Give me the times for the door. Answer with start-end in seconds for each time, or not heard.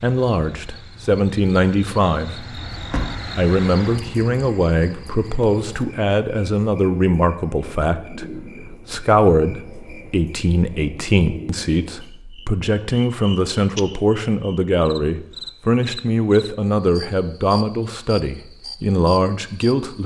2.5-3.2.